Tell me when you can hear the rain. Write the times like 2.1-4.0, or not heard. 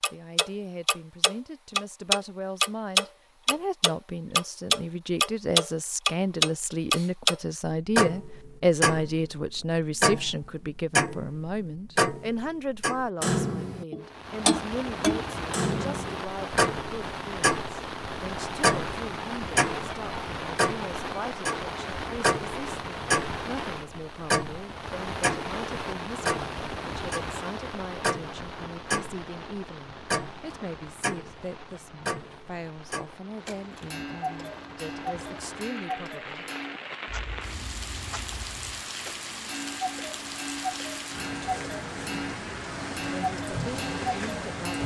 14.0-44.8.